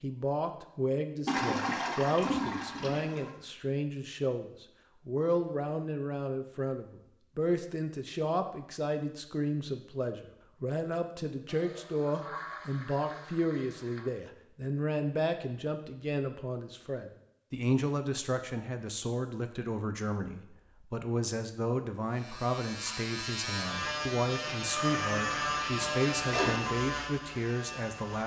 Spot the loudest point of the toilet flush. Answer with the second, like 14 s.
2 s.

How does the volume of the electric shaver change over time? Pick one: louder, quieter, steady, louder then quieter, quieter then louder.
louder then quieter.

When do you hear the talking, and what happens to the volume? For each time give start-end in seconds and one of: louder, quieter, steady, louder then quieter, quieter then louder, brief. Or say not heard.
0.0-28.2 steady.